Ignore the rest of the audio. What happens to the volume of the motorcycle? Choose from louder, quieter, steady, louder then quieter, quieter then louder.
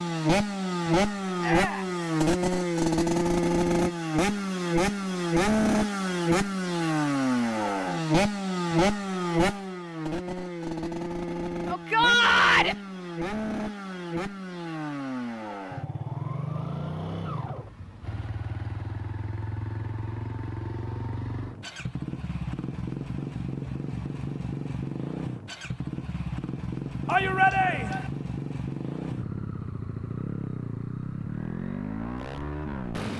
quieter.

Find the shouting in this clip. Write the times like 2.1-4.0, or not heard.
1.4-1.9, 11.7-12.8, 27.1-28.1.